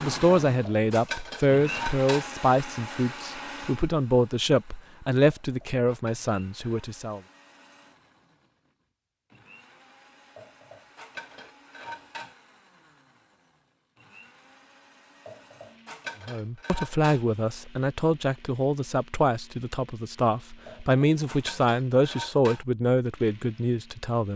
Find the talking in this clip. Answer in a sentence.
The talking can be heard from 0.0 to 7.2 s and from 16.2 to 24.3 s.